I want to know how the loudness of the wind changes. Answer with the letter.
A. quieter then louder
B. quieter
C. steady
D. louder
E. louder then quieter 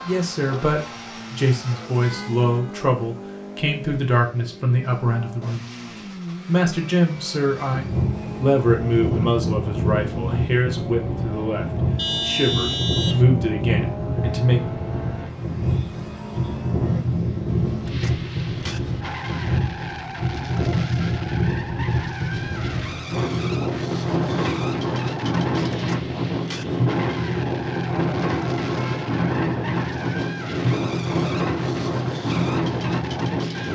C.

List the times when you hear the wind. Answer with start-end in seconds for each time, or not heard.
7.7-33.7.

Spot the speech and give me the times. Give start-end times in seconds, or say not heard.
0.0-5.7, 6.5-14.6.